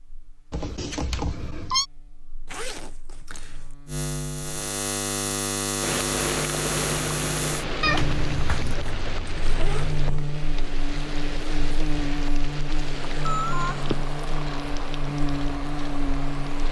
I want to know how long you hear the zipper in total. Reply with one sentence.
You can hear the zipper for 3 seconds altogether.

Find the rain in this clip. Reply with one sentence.
You can hear the rain from 5.8 to 16.6 s.